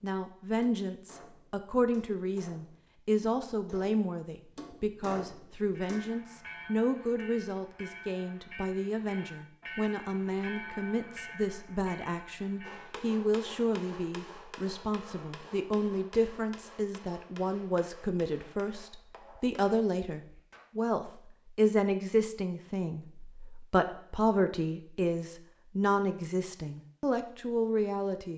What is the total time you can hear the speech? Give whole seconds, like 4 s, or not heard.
28 s.